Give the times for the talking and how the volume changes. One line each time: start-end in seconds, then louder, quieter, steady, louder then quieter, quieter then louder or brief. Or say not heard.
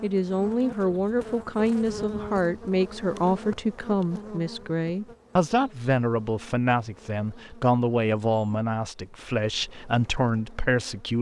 0.0-11.1 steady.